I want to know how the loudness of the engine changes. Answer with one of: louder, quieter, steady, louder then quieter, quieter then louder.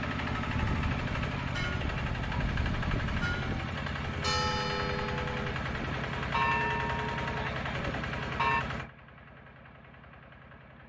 quieter.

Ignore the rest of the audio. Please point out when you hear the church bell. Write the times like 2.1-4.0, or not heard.
0.4-8.7.